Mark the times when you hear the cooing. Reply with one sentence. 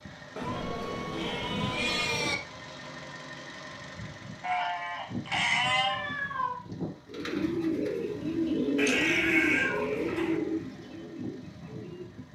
You can hear the cooing from 7.0 to 12.1 s.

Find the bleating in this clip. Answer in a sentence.
The bleating can be heard from 0.3 to 2.4 s, from 4.4 to 6.0 s and from 8.8 to 10.4 s.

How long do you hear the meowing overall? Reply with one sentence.
You can hear the meowing for 4 seconds altogether.